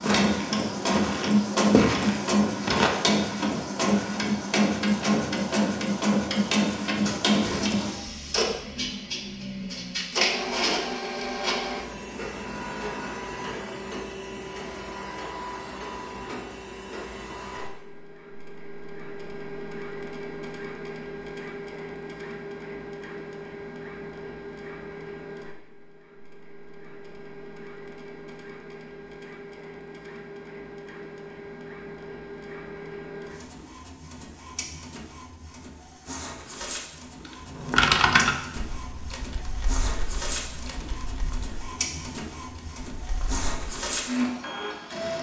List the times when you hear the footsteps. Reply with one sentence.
The footsteps can be heard from 0.0 to 3.0 s.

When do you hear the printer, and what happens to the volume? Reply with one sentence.
The printer can be heard from 0.0 to 45.1 s, getting quieter then louder.